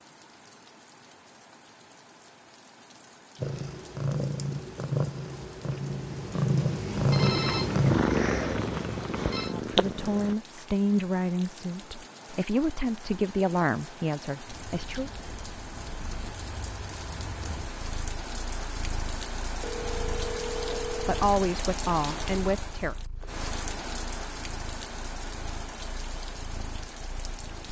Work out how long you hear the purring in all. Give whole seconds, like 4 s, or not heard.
20 s.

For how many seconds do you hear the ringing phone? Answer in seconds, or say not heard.
4 s.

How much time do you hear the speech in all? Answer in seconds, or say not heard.
8 s.